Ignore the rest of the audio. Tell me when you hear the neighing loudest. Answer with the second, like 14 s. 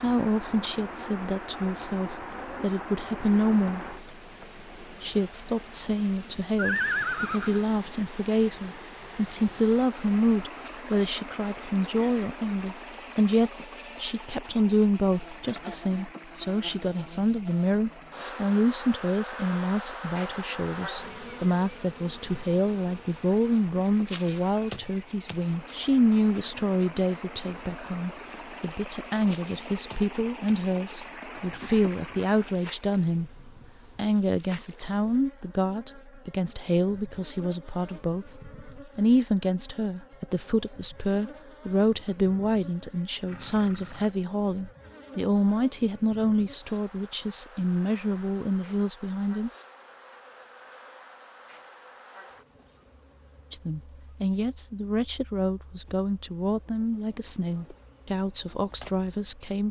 7 s.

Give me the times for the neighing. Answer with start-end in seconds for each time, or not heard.
6.5-7.7, 43.2-44.1.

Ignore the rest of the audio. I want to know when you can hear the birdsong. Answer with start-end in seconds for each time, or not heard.
not heard.